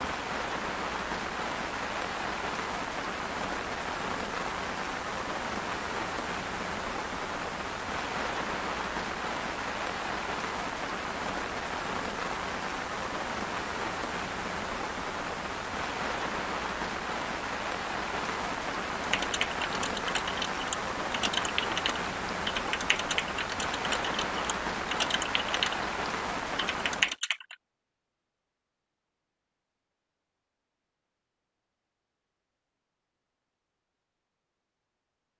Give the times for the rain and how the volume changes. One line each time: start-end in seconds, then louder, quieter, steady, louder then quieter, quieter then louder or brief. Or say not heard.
0.0-27.1 steady.